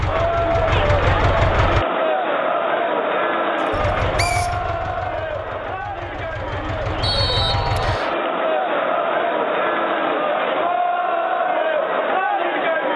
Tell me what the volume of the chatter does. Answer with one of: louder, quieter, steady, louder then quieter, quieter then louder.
quieter then louder.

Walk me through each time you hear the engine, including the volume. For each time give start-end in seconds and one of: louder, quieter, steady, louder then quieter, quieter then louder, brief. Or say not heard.
0.0-1.9 brief
3.7-8.0 quieter then louder.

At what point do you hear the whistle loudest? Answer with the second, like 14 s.
7 s.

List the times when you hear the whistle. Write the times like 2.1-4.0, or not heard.
3.6-4.5, 7.0-8.2.